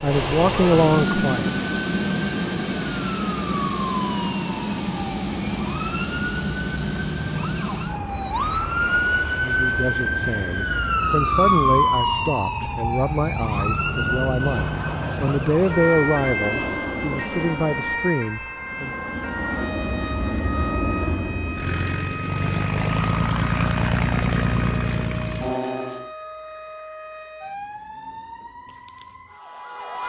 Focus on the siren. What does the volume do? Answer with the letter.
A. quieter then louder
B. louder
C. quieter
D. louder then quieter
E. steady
D.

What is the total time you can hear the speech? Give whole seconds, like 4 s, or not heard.
11 s.